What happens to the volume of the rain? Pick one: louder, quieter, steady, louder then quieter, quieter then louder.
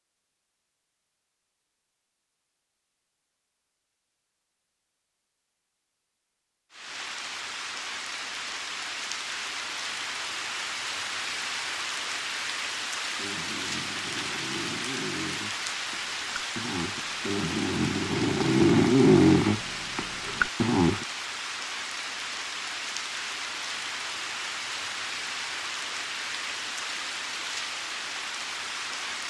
steady.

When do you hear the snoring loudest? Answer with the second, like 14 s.
19 s.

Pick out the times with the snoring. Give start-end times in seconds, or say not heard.
13.1-21.1.